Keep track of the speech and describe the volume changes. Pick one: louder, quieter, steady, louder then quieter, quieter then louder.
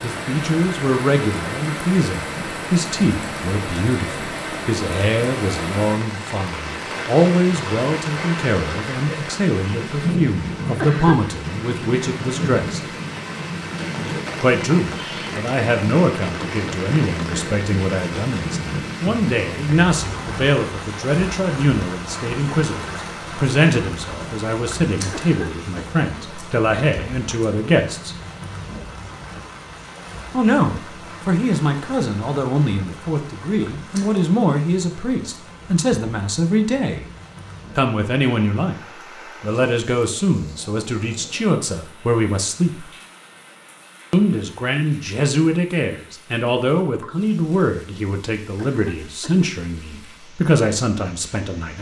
steady.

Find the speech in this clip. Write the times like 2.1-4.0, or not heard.
0.0-12.8, 14.4-28.1, 30.3-37.0, 37.8-42.9, 44.1-51.7.